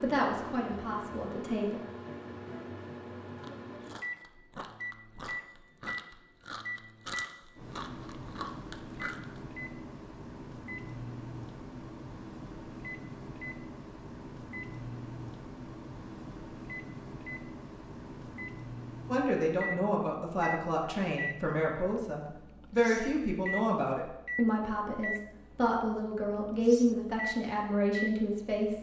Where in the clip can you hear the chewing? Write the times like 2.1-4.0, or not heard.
3.4-9.4.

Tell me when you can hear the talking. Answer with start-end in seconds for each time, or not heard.
0.0-1.8, 19.1-28.7.